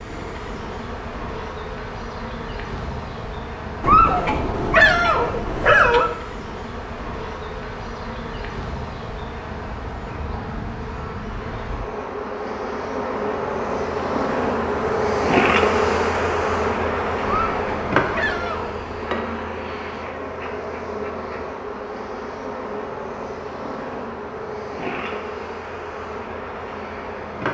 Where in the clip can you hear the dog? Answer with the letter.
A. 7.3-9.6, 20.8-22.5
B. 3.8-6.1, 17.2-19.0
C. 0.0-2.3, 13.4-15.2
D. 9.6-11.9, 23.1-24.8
B.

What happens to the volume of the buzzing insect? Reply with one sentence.
The loudness of the buzzing insect goes up, then down.